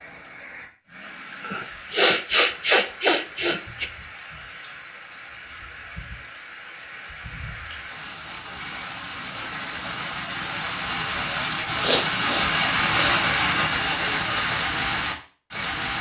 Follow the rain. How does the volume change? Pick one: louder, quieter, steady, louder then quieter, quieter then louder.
louder.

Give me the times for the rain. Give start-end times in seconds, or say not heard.
0.0-15.9.